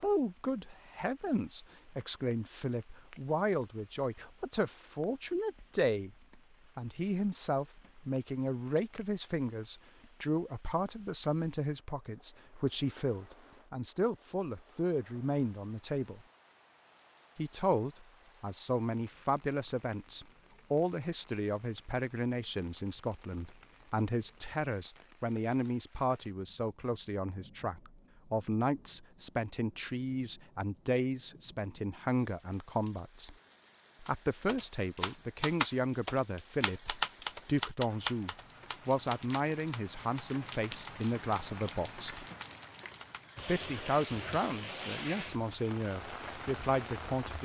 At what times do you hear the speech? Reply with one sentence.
The speech can be heard from 0.0 to 6.2 s, from 6.8 to 16.2 s, from 17.4 to 33.4 s, from 34.0 to 42.2 s and from 43.4 to 47.4 s.